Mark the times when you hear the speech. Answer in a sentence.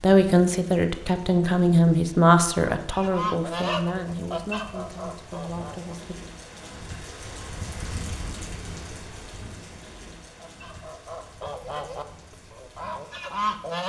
You can hear the speech from 0.0 to 6.2 s.